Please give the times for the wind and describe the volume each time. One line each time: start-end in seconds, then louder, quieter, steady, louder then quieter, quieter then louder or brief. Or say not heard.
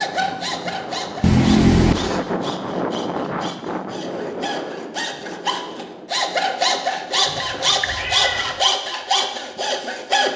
0.0-7.5 louder then quieter.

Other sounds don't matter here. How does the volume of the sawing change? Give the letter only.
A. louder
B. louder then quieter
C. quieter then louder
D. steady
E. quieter
C.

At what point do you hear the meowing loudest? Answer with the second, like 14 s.
2 s.